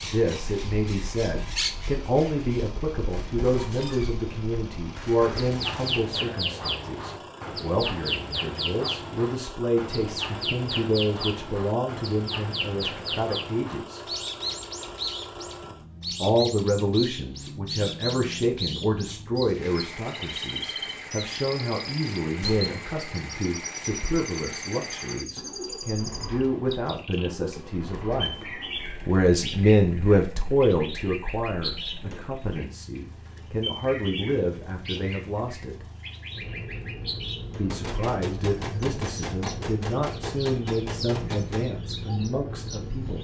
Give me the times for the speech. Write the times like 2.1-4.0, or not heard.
0.0-14.1, 16.2-35.9, 37.5-43.1.